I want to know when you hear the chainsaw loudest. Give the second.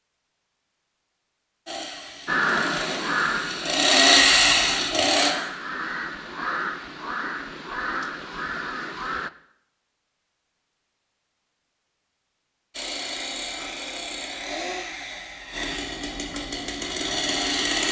4 s.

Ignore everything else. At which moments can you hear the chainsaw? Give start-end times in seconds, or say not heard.
1.6-5.3, 12.7-17.8.